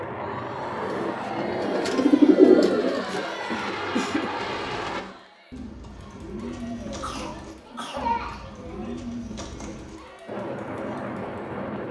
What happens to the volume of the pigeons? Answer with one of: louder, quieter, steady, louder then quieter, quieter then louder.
quieter.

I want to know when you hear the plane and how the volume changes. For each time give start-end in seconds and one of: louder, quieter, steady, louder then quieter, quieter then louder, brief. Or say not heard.
0.0-5.0 quieter then louder
10.2-11.8 brief.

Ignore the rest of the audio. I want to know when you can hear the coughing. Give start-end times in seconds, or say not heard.
3.5-4.3, 6.8-8.5.